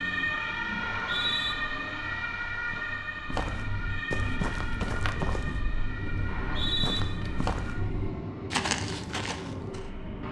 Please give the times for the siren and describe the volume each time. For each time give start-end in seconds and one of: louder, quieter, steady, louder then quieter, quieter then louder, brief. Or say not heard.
0.0-10.2 quieter.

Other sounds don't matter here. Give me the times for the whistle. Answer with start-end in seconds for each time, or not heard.
0.8-1.6, 6.2-7.0.